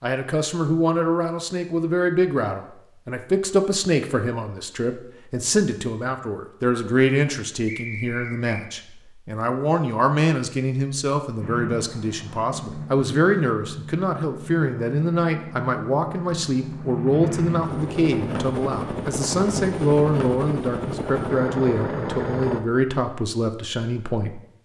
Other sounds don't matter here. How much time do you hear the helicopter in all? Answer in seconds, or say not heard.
11 s.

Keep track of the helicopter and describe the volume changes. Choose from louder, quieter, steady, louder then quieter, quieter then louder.
louder.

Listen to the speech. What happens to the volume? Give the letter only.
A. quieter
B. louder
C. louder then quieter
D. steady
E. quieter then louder
D.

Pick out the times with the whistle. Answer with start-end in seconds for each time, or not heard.
7.7-8.7.